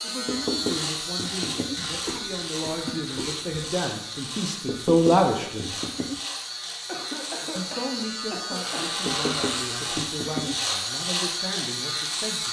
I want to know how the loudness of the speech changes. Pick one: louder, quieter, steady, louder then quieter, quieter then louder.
louder then quieter.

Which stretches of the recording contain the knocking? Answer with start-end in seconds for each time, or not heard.
0.2-1.8, 4.7-6.2, 9.1-10.6.